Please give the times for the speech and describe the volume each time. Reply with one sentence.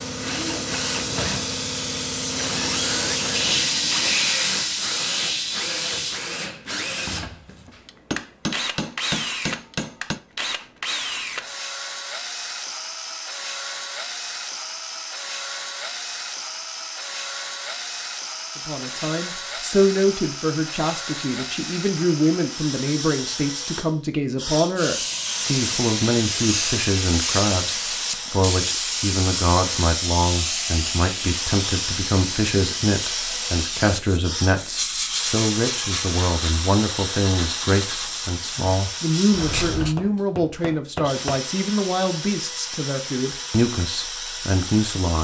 The speech can be heard from 18.6 to 45.1 s, at a steady volume.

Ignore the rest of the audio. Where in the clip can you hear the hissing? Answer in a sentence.
The hissing can be heard from 0.0 to 6.2 s and from 24.8 to 40.0 s.